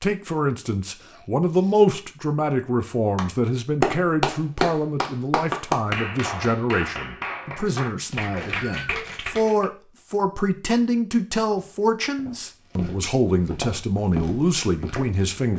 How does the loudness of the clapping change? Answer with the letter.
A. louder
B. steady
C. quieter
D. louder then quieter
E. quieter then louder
C.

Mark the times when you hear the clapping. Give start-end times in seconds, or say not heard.
3.1-9.7.